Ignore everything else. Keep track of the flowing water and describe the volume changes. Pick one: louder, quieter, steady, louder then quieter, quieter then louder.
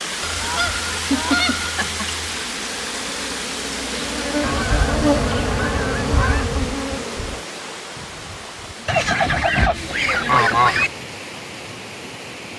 quieter.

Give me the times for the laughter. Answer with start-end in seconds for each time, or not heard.
1.1-2.0.